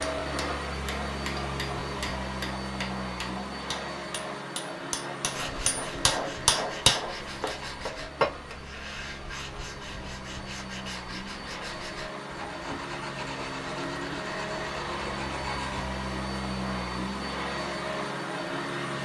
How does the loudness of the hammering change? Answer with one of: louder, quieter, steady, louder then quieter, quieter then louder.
louder.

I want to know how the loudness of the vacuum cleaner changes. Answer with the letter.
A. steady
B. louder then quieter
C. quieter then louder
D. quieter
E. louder
C.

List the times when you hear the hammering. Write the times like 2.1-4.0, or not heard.
0.0-8.6.